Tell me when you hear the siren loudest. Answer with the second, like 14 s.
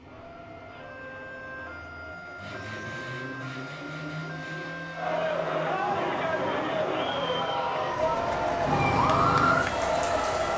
9 s.